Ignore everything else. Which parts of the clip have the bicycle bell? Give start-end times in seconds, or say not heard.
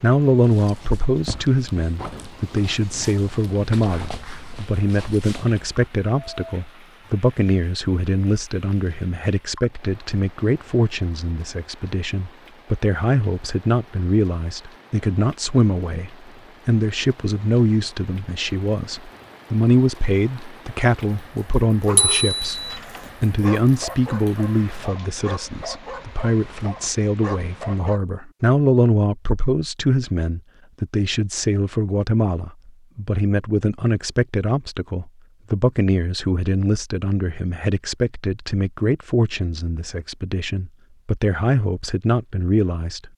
21.9-22.8.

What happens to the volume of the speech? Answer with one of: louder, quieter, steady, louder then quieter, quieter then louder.
steady.